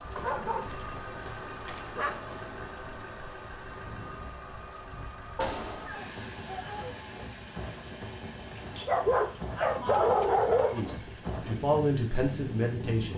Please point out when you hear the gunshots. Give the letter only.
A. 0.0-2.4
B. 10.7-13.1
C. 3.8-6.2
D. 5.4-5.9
D.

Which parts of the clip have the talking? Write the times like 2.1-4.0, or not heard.
10.7-13.1.